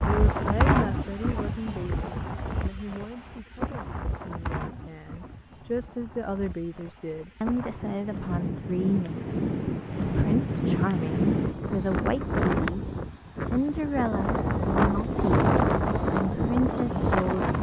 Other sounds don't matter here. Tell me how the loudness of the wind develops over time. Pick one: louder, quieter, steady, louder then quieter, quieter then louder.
quieter then louder.